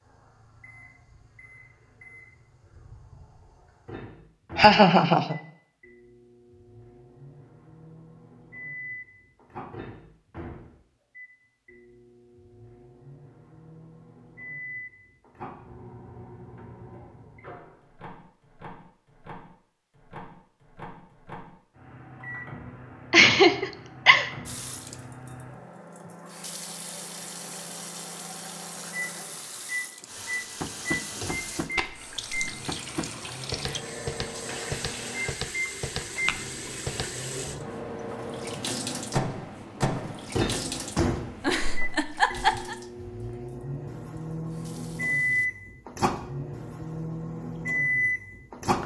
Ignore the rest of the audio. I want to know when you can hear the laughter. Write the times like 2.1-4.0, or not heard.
4.5-5.3, 23.1-24.2, 41.4-42.8.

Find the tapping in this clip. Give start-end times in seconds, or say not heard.
30.6-37.1.